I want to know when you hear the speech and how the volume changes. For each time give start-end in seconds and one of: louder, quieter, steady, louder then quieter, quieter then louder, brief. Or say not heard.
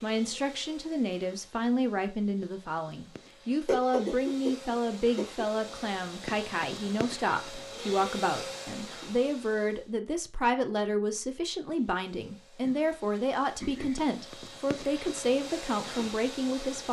0.0-16.8 steady.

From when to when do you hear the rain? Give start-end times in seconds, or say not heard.
not heard.